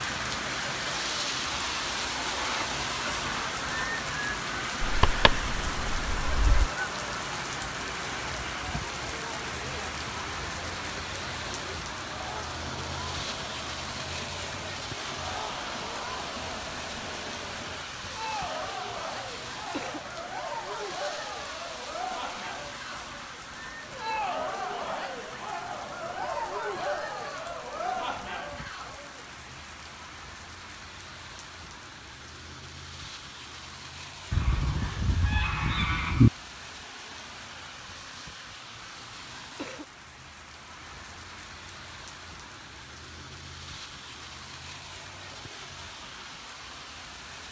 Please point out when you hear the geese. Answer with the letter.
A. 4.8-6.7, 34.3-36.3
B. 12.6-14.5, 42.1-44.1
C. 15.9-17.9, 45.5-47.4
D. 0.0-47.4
A.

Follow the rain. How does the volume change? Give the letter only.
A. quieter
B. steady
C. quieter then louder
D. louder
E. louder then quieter
A.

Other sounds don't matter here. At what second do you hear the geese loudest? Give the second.
36 s.